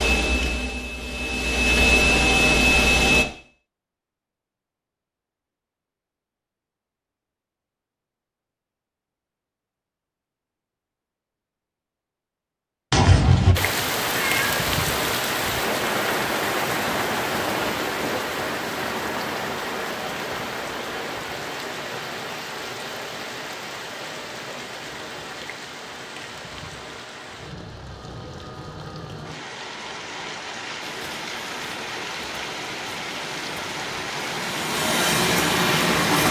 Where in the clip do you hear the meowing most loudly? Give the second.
13 s.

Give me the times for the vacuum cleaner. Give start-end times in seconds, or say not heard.
0.0-3.2, 30.8-36.2.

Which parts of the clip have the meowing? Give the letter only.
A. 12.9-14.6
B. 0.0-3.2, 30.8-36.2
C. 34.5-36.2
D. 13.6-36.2
A.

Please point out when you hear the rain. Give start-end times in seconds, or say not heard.
13.6-36.2.